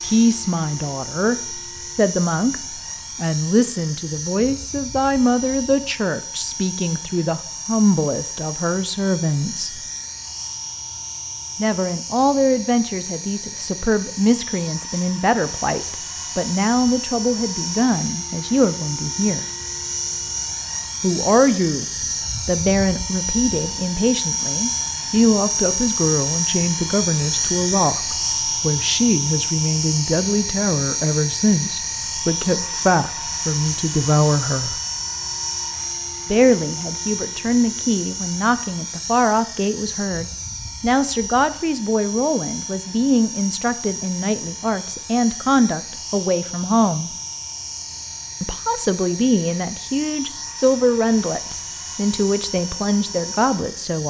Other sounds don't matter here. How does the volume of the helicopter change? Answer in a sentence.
The loudness of the helicopter goes up, then down.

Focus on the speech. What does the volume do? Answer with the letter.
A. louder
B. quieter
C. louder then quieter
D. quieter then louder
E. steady
E.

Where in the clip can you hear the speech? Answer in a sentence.
You can hear the speech from 0.0 to 9.8 s, from 11.6 to 19.4 s, from 21.0 to 34.8 s, from 36.2 to 47.1 s and from 48.4 to 54.0 s.